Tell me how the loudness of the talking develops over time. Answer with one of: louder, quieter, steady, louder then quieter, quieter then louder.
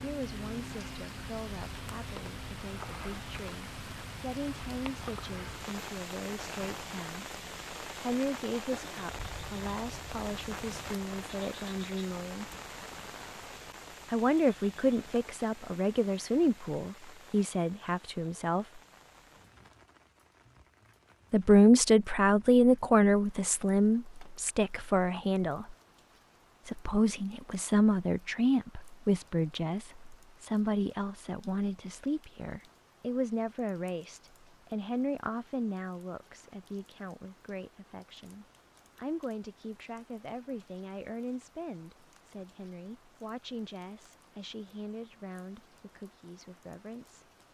louder then quieter.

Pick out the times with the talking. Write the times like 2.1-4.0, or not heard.
0.0-7.2, 8.0-12.4, 14.1-18.6, 21.3-25.8, 26.6-47.2.